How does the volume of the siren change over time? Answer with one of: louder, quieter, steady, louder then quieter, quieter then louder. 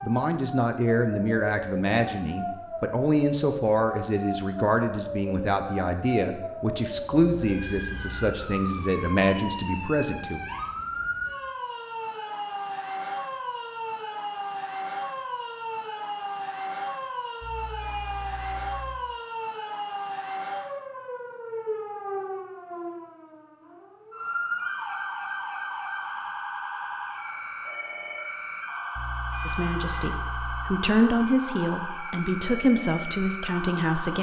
steady.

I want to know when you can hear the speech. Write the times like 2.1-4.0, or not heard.
0.0-10.4, 29.4-34.1.